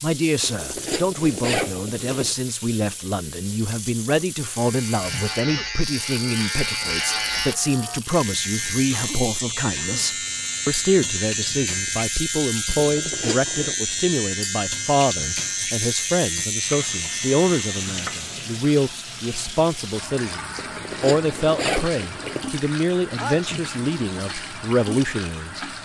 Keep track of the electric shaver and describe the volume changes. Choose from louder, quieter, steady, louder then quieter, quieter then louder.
steady.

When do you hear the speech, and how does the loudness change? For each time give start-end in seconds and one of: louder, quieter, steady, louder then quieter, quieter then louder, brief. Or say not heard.
0.0-25.6 steady.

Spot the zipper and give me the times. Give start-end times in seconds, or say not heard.
0.4-2.4, 12.8-13.8, 20.6-22.5.